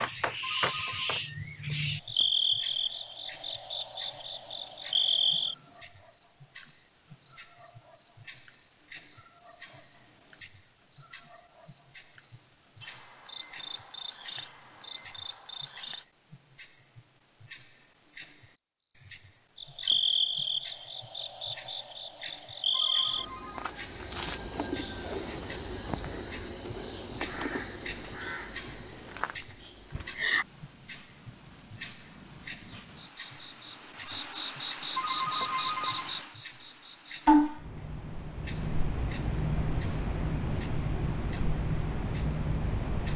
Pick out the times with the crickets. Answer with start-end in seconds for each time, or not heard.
0.0-43.1.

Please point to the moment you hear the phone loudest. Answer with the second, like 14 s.
35 s.